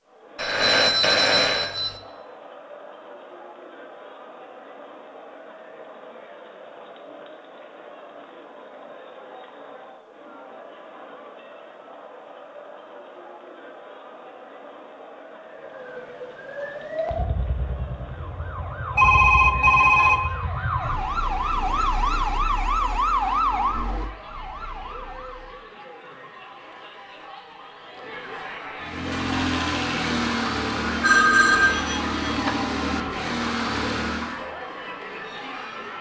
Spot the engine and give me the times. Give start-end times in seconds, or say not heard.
28.8-34.5.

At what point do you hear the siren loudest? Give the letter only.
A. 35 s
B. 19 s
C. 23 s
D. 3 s
C.